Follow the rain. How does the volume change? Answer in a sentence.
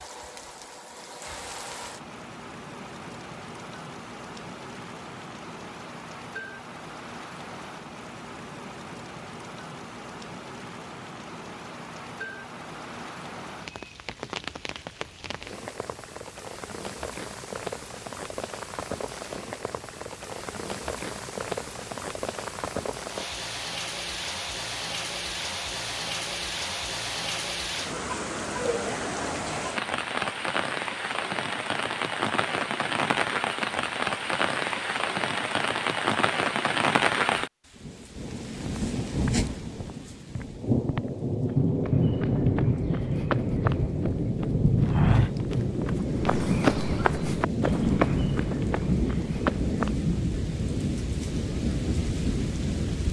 The loudness of the rain goes up.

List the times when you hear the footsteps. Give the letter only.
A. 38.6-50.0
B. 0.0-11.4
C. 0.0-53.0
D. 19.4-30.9
A.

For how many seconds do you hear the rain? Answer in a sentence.
The rain can be heard for 53 seconds in total.